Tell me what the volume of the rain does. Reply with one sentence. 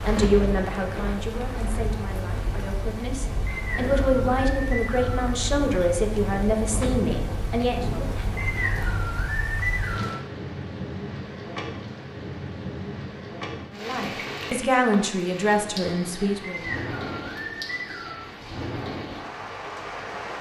The loudness of the rain stays about the same.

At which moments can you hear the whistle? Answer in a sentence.
The whistle can be heard from 3.5 to 5.2 s, from 8.3 to 10.2 s and from 16.4 to 18.2 s.